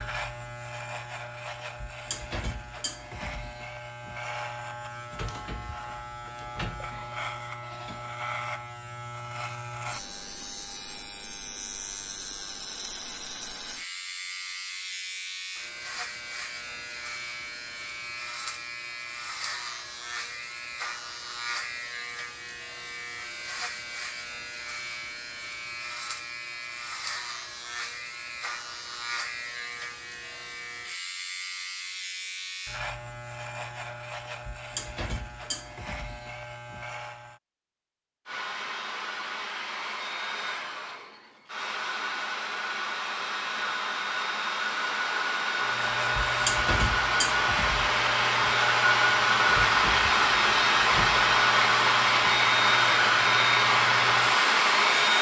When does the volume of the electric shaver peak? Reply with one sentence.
The volume of the electric shaver peaks at 47 seconds.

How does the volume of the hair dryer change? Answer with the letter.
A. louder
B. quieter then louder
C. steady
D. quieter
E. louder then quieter
A.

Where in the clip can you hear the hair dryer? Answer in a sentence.
The hair dryer can be heard from 38.2 to 55.1 s.